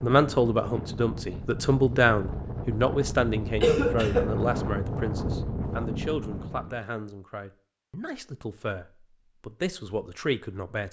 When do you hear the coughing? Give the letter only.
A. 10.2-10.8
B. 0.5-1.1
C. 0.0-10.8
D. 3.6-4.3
D.